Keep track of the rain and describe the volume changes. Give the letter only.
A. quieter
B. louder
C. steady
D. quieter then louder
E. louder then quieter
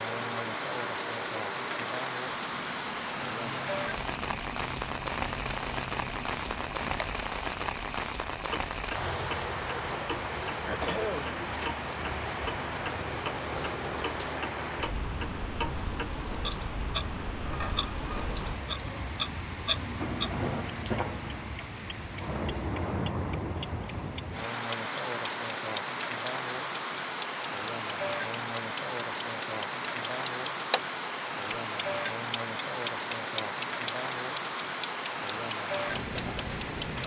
C.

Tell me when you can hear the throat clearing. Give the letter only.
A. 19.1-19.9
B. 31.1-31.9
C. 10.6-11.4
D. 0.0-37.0
C.